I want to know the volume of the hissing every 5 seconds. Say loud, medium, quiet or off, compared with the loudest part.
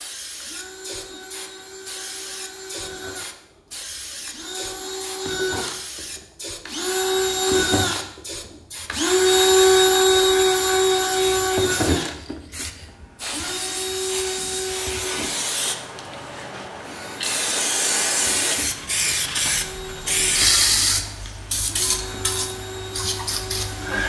quiet, quiet, medium, loud, loud.